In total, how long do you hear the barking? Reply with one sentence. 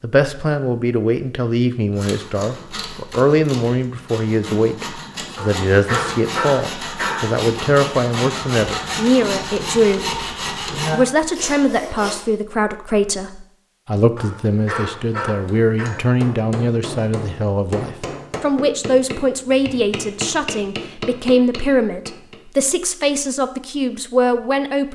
The barking can be heard for 4 seconds in total.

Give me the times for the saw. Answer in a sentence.
You can hear the saw from 1.9 to 12.2 s.